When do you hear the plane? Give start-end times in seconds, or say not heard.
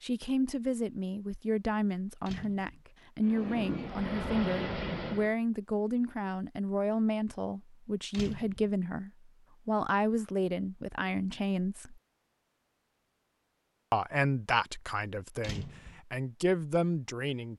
3.2-5.3.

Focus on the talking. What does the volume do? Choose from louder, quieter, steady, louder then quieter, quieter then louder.
steady.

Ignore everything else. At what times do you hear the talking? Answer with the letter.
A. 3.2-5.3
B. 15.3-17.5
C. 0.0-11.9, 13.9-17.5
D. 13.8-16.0
C.